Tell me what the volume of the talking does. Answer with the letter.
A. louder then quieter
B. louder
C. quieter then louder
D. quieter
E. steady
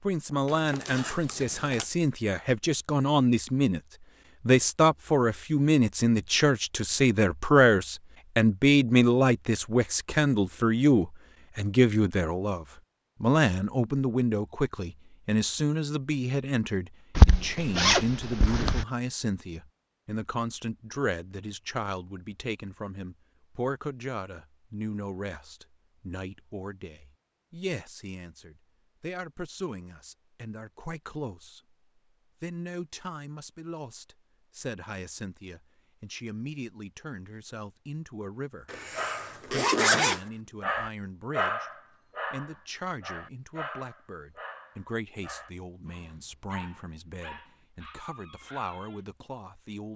D.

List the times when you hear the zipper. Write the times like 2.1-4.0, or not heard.
0.5-1.9, 17.1-18.9, 38.7-40.2.